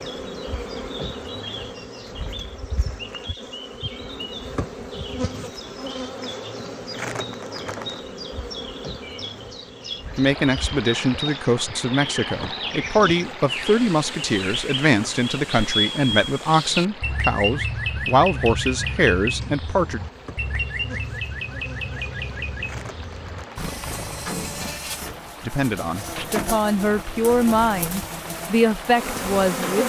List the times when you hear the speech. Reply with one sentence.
The speech can be heard from 10.2 to 20.0 s and from 25.4 to 29.8 s.